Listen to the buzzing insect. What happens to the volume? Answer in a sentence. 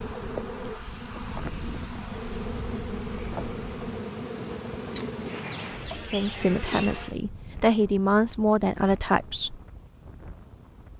The volume of the buzzing insect goes down.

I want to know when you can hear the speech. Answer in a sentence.
The speech can be heard from 6.1 to 9.6 s.